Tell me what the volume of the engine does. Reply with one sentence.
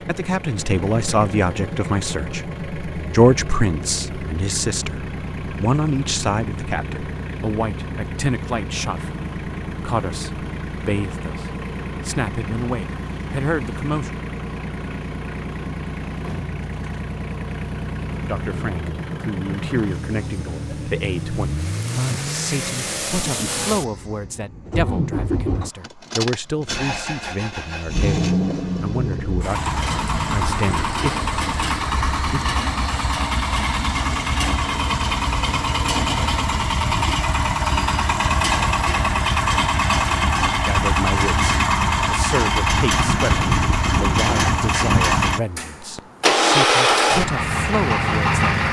The loudness of the engine goes up.